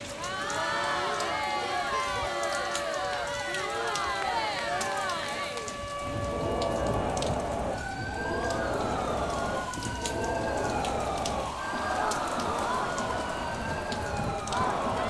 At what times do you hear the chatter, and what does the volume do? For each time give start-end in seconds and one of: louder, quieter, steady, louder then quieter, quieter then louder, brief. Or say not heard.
0.0-15.0 steady.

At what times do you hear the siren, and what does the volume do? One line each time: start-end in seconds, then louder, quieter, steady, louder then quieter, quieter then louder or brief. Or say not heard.
0.0-15.0 steady.